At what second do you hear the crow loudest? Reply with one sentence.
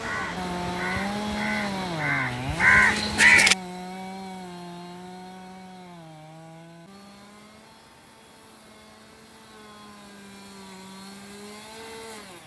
The volume of the crow peaks at 3 seconds.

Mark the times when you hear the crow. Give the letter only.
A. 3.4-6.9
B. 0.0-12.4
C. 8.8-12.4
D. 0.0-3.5
D.